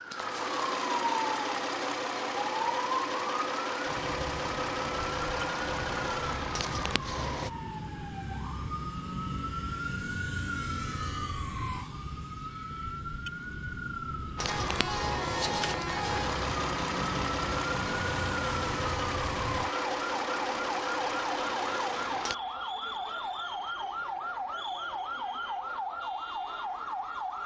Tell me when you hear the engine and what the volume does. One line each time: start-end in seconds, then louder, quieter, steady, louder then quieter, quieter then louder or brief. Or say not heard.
0.0-7.5 steady
14.3-22.4 steady.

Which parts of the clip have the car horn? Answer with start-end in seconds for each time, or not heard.
14.4-16.4.